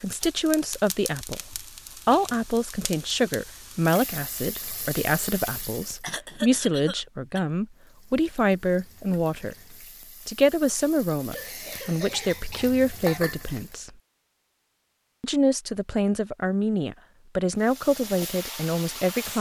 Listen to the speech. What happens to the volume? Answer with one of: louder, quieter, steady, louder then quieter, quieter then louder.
steady.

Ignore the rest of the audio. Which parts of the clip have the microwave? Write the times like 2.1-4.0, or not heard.
not heard.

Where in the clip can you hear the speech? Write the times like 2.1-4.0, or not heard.
0.0-9.6, 10.2-13.9, 15.2-19.3.